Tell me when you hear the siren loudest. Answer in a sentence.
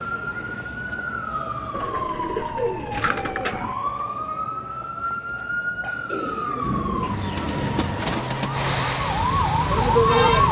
The volume of the siren peaks at 10 seconds.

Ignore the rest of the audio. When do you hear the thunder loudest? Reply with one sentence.
The loudest moment of the thunder is at 7 seconds.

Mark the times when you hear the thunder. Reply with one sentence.
You can hear the thunder from 6.6 to 8.2 s.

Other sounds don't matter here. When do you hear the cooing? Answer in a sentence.
The cooing can be heard from 1.7 to 3.8 s and from 6.0 to 8.6 s.